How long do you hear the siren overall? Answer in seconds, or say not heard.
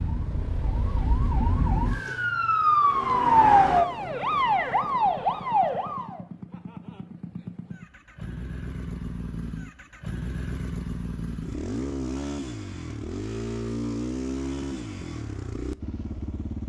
6 s.